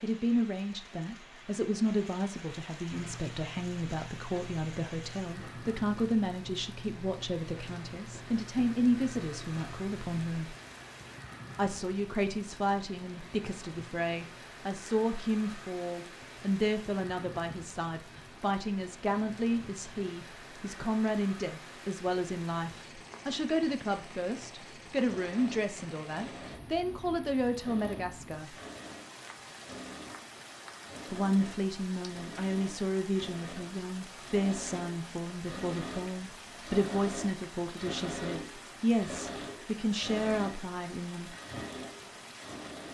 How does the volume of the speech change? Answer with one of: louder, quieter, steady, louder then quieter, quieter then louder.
steady.